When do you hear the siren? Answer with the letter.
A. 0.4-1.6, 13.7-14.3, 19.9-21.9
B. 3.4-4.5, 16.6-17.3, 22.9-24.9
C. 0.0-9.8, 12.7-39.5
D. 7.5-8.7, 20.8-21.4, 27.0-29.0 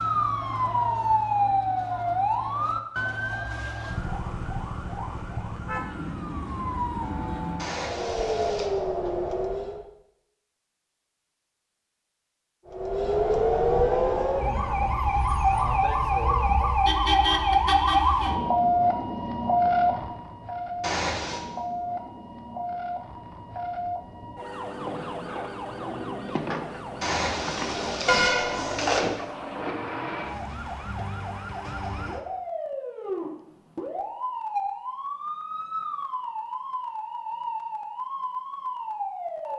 C.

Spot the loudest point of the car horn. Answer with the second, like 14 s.
28 s.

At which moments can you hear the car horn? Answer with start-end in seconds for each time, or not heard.
7.5-8.7, 20.8-21.4, 27.0-29.0.